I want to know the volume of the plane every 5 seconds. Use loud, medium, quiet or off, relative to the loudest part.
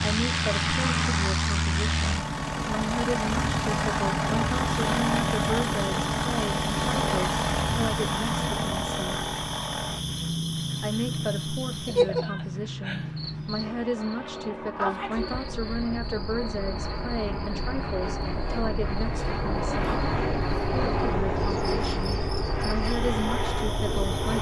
loud, loud, medium, medium, loud.